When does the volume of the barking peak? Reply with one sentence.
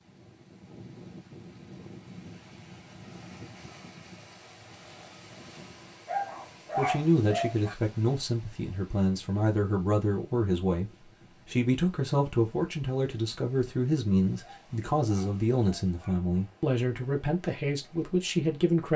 The loudest moment of the barking is at 7 seconds.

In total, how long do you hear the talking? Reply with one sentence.
The talking can be heard for 12 seconds in total.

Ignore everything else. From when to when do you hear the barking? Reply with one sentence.
You can hear the barking from 6.0 to 7.8 s and from 14.4 to 16.2 s.